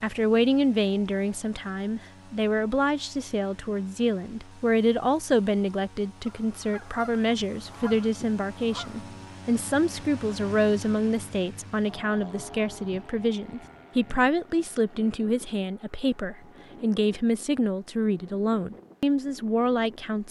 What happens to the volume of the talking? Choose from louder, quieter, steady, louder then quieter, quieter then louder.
steady.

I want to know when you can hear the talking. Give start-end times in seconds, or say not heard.
0.0-20.2.